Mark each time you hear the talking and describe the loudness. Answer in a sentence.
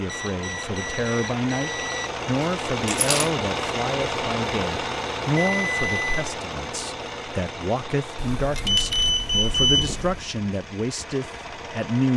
The talking can be heard from 0.0 to 12.1 s, at a steady volume.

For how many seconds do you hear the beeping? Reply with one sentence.
The beeping can be heard for 5 seconds in total.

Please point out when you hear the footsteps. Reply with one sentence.
The footsteps can't be heard in this clip.